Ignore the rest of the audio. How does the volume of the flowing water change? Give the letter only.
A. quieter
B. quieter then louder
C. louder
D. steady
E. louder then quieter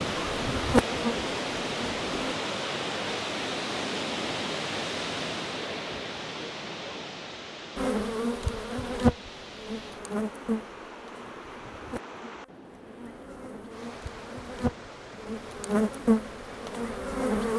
A.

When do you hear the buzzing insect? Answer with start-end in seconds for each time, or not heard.
0.0-2.4, 7.8-17.5.